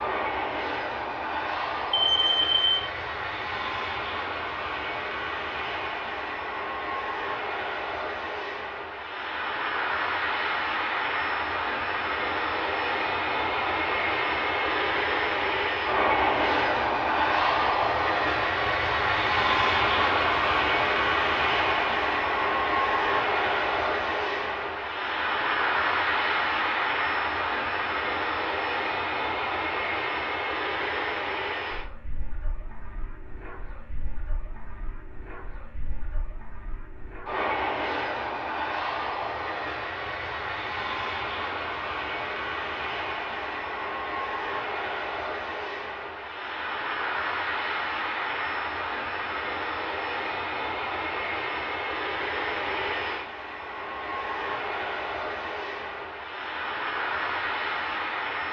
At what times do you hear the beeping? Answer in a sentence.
The beeping can be heard from 1.9 to 2.9 s.